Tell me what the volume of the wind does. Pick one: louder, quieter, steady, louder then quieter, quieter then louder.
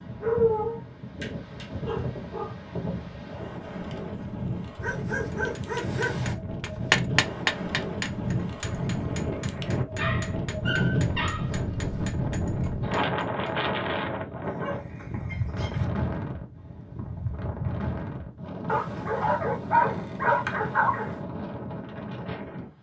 louder then quieter.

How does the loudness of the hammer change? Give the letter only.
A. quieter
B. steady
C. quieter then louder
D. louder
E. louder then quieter
A.